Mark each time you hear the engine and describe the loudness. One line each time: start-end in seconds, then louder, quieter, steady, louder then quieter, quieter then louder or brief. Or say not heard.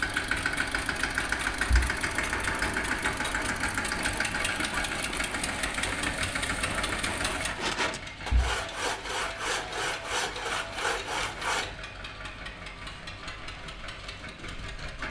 0.0-15.0 quieter.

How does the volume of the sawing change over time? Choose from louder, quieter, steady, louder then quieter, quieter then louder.
louder.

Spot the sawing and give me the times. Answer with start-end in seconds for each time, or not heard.
2.1-11.7.